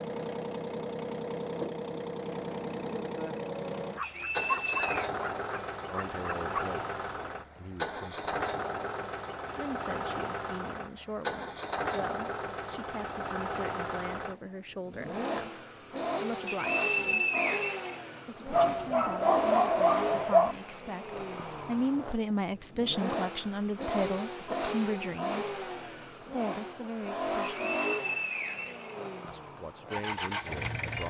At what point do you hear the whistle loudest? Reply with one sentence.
The volume of the whistle peaks at 17 seconds.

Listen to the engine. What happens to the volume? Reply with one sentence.
The loudness of the engine stays about the same.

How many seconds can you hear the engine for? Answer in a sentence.
The engine can be heard for 31 seconds in total.